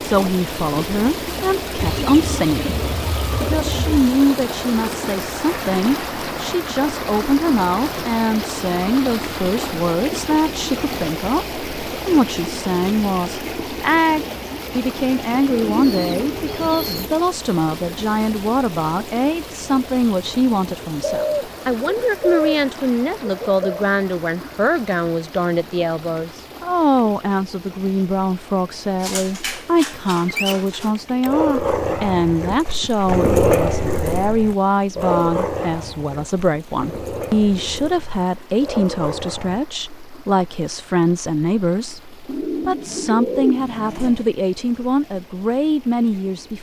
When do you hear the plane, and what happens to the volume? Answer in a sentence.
The plane can't be heard in this clip.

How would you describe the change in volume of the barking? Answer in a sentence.
The loudness of the barking goes up, then down.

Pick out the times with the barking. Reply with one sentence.
You can hear the barking from 29.0 to 39.6 s.